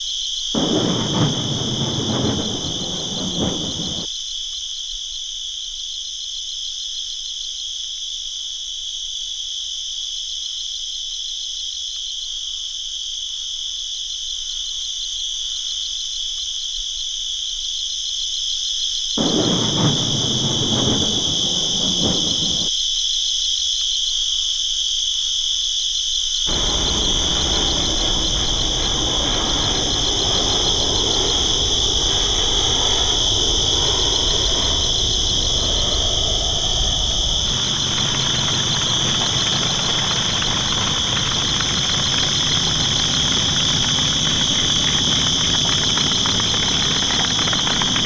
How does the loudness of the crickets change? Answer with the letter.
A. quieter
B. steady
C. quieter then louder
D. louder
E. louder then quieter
D.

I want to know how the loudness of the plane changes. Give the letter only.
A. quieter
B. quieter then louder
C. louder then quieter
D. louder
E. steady
E.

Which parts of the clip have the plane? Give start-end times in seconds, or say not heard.
26.4-48.0.